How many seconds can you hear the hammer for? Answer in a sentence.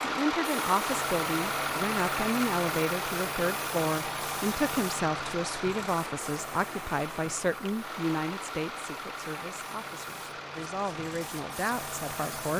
The hammer can't be heard in this clip.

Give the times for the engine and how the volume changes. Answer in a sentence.
The engine can be heard from 0.0 to 12.5 s, getting quieter.